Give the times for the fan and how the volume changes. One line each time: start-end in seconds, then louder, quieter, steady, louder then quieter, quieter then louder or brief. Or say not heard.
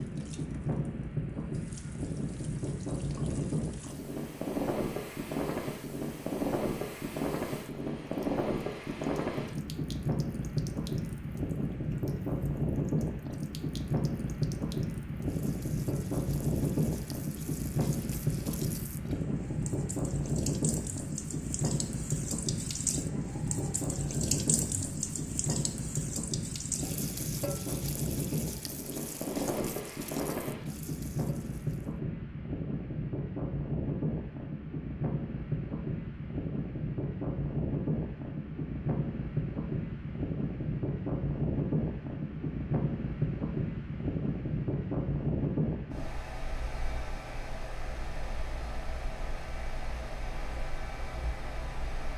0.0-52.1 steady.